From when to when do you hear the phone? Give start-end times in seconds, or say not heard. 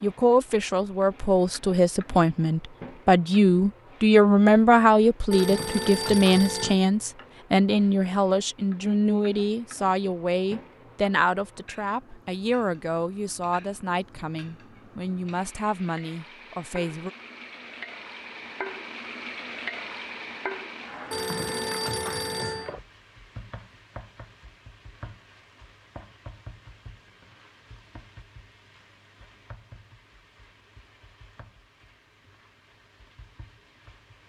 5.3-6.8, 21.1-22.7.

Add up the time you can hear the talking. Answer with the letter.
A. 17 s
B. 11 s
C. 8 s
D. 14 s
A.